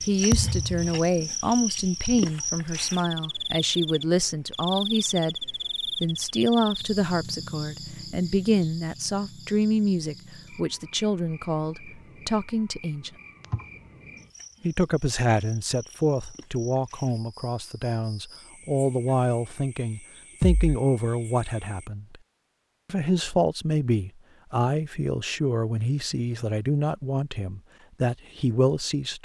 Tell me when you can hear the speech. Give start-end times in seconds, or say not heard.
0.0-13.1, 14.6-22.1, 22.9-29.1.